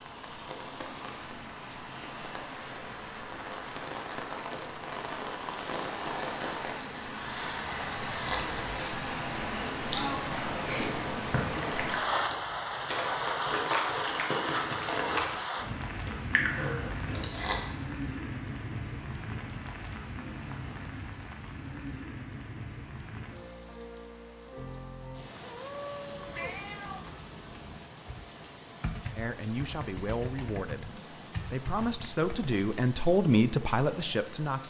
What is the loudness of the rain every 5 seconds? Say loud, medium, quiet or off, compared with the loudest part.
medium, loud, loud, medium, medium, quiet, quiet.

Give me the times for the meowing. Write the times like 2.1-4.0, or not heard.
25.4-27.0.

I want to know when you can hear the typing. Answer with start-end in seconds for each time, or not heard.
26.1-32.6.